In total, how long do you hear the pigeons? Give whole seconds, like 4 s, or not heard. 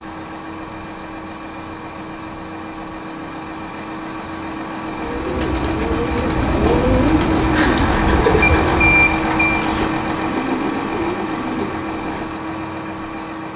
7 s.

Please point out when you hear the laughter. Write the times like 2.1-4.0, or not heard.
7.3-8.8.